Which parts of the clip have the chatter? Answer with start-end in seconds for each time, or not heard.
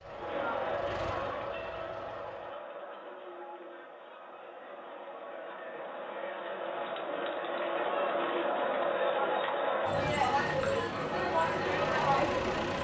0.0-12.7.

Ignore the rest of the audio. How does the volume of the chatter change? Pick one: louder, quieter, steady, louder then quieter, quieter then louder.
quieter then louder.